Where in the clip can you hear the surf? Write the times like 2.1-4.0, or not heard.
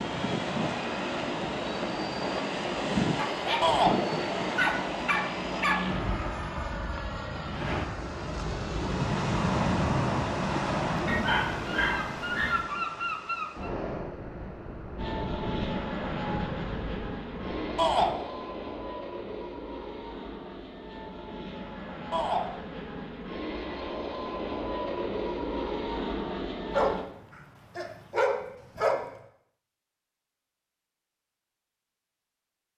0.0-17.9.